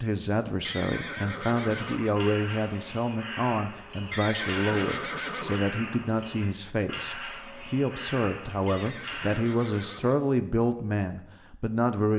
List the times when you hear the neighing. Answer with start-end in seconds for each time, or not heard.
0.6-2.2, 4.1-5.7, 8.7-10.2.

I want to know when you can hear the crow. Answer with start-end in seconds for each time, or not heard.
1.8-9.4.